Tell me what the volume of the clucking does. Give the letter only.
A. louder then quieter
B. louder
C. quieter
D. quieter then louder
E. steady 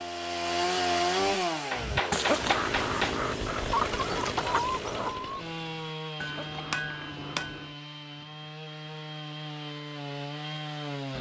C.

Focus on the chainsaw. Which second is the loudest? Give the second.
1 s.